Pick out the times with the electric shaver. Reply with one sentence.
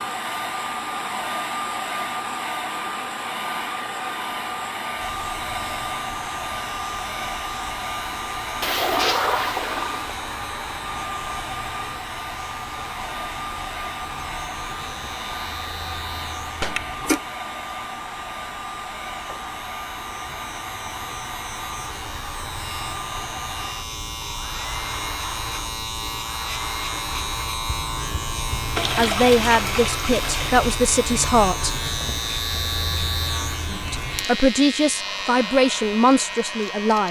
The electric shaver can be heard from 5.0 to 37.0 s.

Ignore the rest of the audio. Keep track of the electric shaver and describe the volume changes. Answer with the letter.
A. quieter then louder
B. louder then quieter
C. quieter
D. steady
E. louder
E.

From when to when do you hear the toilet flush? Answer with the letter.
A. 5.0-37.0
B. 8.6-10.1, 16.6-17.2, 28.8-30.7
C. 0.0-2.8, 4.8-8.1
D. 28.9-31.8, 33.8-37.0
B.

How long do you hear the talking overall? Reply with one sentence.
You can hear the talking for 6 seconds altogether.